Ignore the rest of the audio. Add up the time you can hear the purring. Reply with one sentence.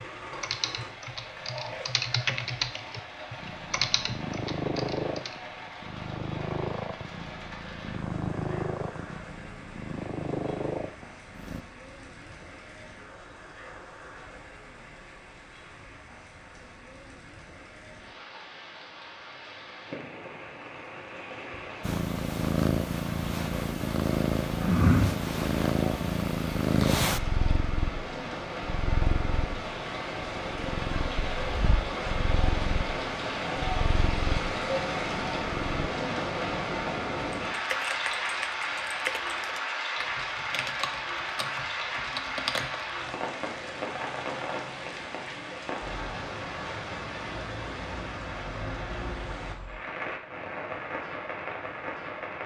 You can hear the purring for 22 seconds altogether.